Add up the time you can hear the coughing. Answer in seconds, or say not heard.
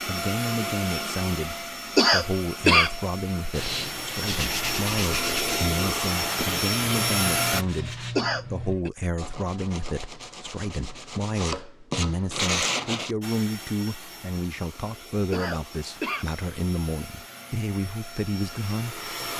3 s.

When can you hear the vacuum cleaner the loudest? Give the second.
7 s.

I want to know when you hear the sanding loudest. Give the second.
13 s.